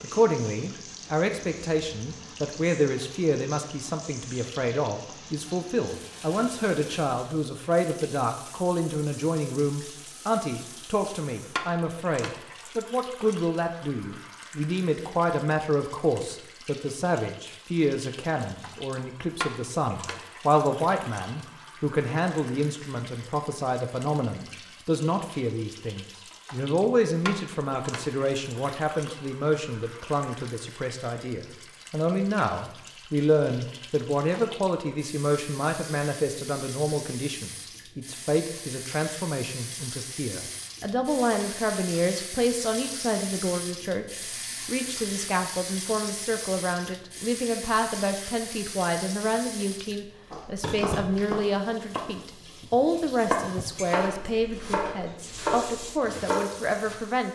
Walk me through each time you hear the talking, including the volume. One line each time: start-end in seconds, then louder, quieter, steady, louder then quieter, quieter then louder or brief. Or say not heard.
0.0-57.2 steady.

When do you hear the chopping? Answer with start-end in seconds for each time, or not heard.
50.3-57.0.